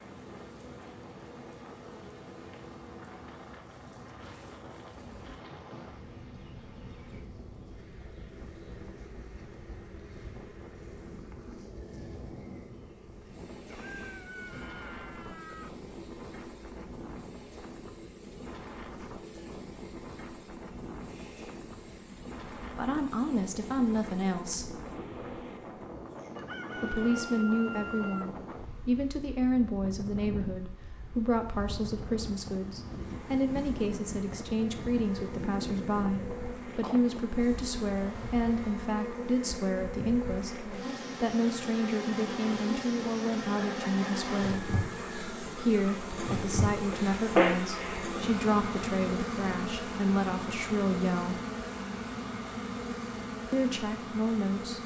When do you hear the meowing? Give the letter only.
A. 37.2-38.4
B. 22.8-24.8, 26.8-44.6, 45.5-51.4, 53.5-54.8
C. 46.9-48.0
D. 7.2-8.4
C.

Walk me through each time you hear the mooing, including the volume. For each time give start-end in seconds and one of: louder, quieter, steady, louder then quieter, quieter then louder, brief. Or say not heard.
not heard.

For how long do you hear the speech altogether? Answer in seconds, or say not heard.
27 s.